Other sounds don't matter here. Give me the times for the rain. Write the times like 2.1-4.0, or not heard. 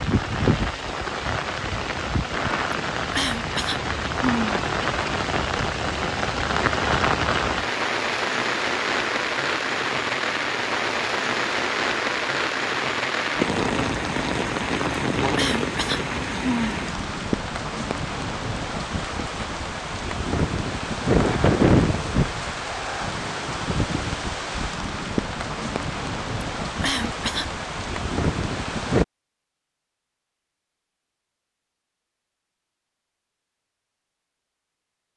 0.0-29.1.